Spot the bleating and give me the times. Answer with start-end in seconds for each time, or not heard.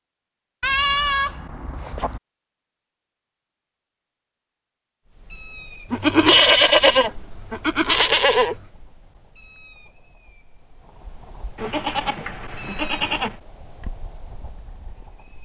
0.6-2.2, 5.9-8.6, 11.6-13.3.